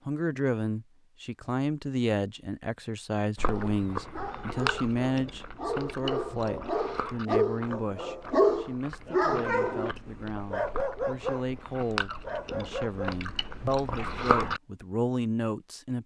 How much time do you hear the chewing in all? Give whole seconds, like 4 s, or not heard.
11 s.